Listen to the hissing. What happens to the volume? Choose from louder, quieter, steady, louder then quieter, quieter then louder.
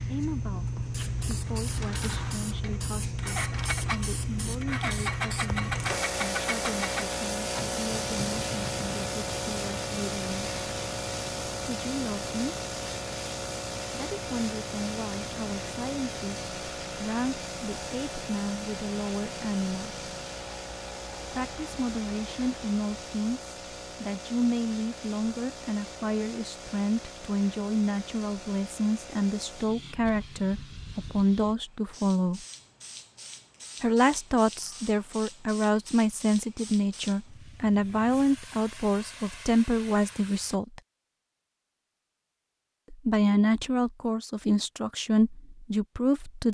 quieter.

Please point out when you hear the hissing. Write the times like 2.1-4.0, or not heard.
0.0-40.6.